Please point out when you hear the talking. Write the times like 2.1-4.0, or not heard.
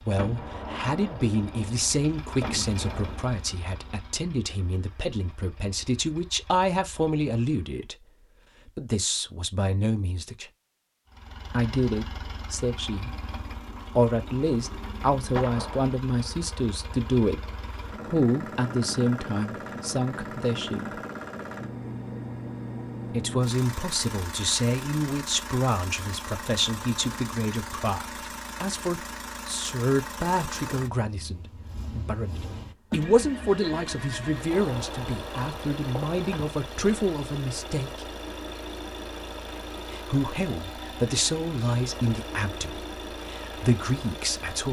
0.0-8.1, 8.7-10.5, 11.5-13.3, 13.9-21.0, 23.1-38.0, 39.9-44.6.